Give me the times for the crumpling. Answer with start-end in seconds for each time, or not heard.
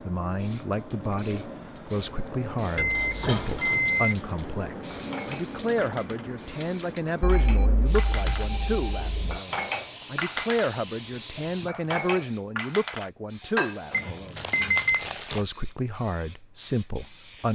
14.3-15.4.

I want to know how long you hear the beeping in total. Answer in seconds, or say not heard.
5 s.